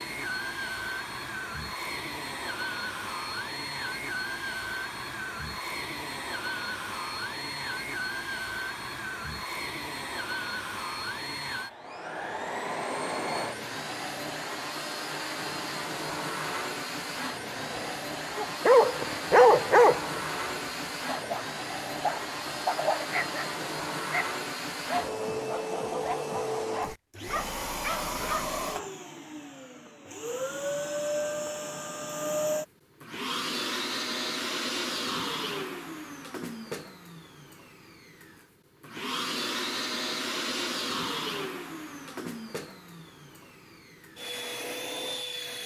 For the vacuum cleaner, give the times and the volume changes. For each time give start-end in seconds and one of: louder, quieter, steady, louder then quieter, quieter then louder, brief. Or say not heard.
0.0-45.6 steady.